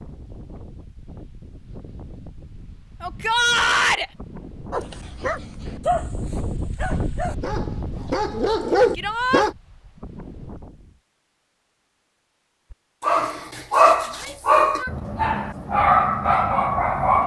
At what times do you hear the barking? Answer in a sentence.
You can hear the barking from 4.7 to 9.6 s and from 12.7 to 17.2 s.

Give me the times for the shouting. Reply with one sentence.
The shouting can be heard from 3.0 to 4.1 s, from 8.9 to 9.4 s and from 14.1 to 15.2 s.